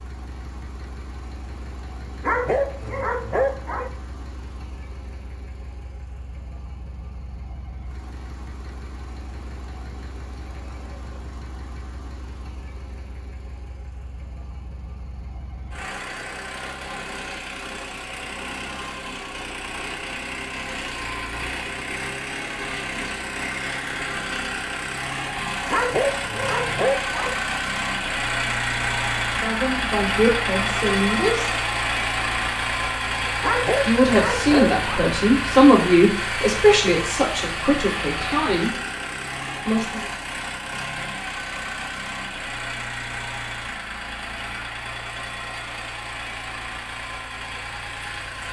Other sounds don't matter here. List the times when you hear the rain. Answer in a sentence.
You can't hear the rain here.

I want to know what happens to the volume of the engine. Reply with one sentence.
The volume of the engine goes up, then down.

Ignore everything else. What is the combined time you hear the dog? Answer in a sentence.
You can hear the dog for 5 seconds altogether.